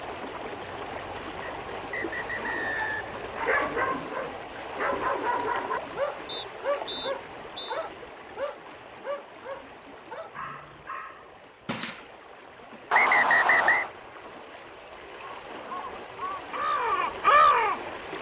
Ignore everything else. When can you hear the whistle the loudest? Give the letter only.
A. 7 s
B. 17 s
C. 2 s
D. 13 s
D.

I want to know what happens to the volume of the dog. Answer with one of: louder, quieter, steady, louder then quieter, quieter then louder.
quieter.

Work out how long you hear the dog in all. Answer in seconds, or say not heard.
10 s.